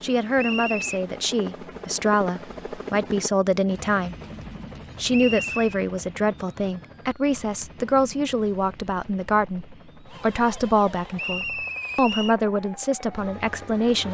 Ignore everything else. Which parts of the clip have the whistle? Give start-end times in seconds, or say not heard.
0.3-1.0, 5.1-5.7, 11.2-12.3.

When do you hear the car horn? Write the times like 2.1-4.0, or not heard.
not heard.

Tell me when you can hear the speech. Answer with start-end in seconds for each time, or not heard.
0.0-4.2, 5.0-14.0.